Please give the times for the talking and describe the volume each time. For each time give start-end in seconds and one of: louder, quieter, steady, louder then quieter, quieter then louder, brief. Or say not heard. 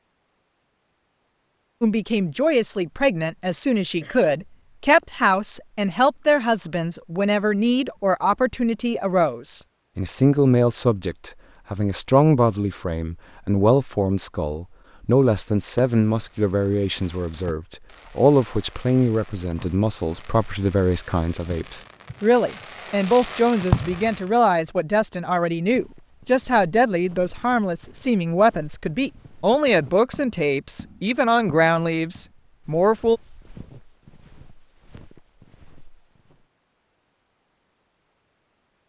1.8-33.2 steady.